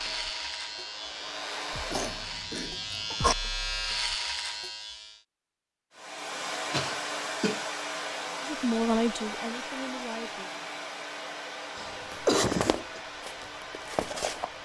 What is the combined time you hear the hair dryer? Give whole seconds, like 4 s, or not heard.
11 s.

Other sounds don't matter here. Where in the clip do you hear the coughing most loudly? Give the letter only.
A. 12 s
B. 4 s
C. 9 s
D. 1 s
A.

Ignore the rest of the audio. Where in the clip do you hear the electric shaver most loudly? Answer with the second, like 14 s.
4 s.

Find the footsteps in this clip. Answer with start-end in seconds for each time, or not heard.
12.1-14.5.